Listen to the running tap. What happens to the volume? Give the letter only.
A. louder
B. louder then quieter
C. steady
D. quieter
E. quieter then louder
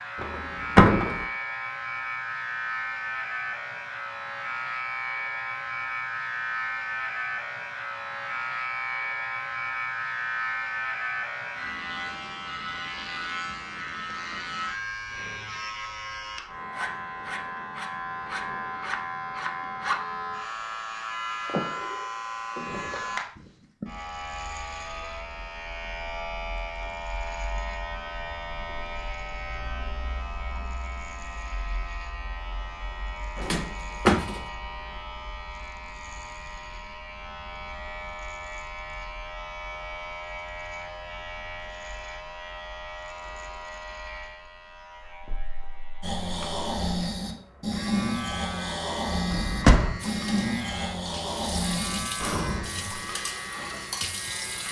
A.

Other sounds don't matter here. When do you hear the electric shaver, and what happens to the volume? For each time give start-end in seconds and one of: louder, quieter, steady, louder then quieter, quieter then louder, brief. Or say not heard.
0.0-54.6 quieter.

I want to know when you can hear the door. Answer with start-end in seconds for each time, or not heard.
0.2-1.2, 33.4-34.4, 49.3-50.0.